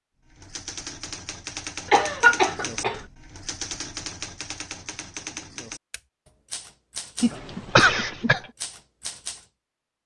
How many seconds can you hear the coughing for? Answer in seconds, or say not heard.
2 s.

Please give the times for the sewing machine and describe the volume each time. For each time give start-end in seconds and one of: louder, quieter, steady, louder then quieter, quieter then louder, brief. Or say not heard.
not heard.